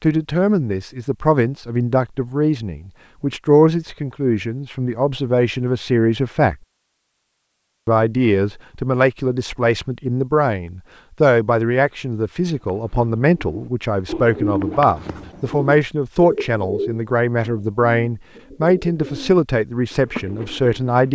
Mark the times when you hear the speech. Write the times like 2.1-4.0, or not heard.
0.0-6.5, 7.8-21.1.